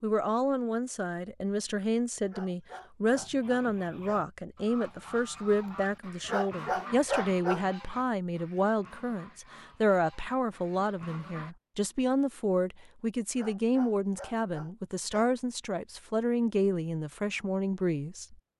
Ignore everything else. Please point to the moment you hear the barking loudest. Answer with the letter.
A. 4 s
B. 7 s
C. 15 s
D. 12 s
B.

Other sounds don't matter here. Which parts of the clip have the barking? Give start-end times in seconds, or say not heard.
2.2-4.2, 6.2-7.7, 13.3-15.3.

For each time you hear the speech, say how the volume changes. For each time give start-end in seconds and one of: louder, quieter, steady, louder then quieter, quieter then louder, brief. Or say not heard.
0.0-18.4 steady.